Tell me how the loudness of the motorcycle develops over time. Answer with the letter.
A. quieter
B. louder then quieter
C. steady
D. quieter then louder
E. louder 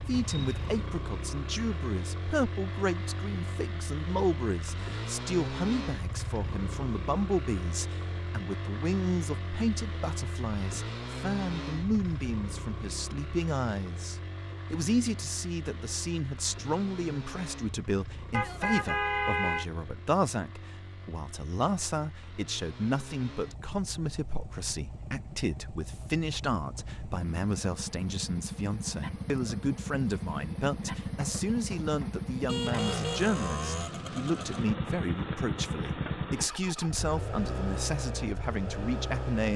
D.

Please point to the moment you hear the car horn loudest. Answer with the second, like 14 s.
19 s.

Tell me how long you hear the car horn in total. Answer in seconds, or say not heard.
4 s.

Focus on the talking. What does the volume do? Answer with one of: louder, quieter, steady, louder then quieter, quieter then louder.
steady.